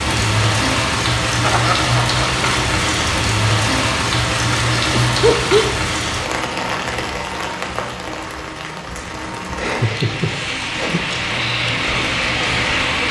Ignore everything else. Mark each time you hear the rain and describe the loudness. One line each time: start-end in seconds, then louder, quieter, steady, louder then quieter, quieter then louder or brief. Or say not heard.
0.0-13.0 quieter then louder.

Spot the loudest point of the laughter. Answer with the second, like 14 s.
5 s.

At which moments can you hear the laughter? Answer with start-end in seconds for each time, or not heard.
1.4-2.5, 4.9-5.7, 9.6-11.1.